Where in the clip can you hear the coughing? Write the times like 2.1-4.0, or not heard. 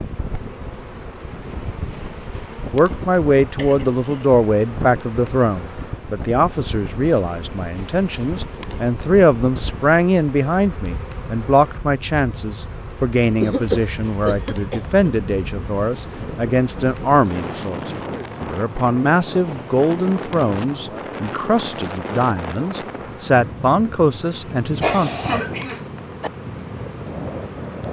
3.5-4.3, 13.4-15.1, 24.8-26.3.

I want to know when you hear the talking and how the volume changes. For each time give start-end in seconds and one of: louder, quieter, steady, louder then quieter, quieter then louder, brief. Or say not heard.
2.7-25.1 steady.